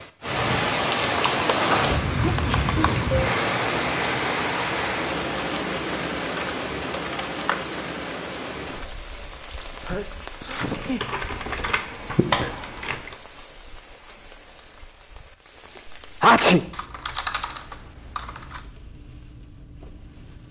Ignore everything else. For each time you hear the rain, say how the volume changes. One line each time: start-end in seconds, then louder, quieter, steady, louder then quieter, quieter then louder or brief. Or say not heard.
0.0-20.4 quieter.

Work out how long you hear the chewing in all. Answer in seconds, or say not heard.
not heard.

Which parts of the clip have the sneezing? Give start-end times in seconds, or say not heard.
2.2-2.9, 9.8-11.1, 16.2-16.6.